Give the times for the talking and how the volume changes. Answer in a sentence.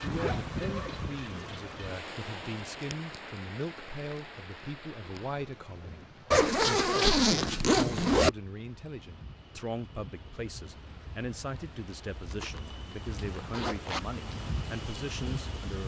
The talking can be heard from 0.0 to 15.8 s, at a steady volume.